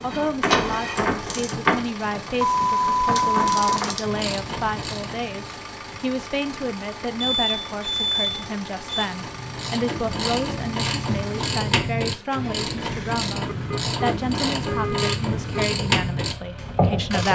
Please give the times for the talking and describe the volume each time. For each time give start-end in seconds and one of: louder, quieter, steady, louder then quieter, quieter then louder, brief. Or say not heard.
0.0-17.3 steady.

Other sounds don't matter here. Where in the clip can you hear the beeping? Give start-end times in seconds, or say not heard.
2.4-4.0, 7.2-9.1, 13.5-15.8.